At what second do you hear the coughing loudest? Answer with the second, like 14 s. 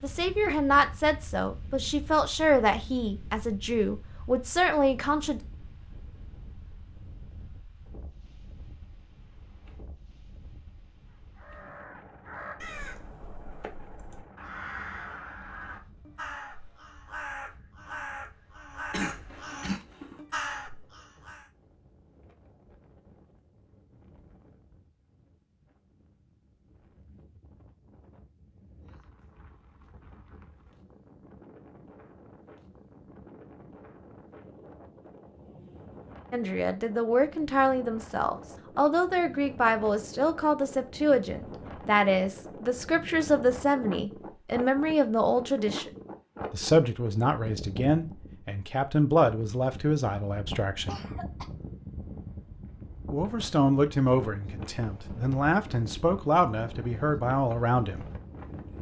19 s.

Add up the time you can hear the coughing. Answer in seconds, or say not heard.
2 s.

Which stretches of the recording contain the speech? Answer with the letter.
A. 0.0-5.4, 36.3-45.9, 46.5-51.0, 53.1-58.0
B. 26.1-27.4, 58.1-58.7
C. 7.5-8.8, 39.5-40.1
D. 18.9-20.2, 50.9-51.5
A.